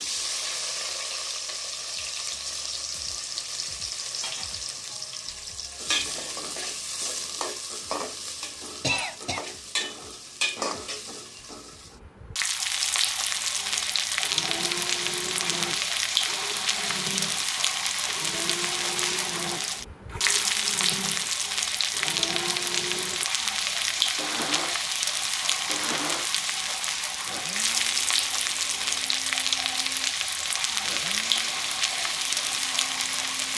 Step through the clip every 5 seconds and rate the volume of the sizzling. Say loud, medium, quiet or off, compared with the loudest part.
medium, medium, loud, loud, loud, loud, loud.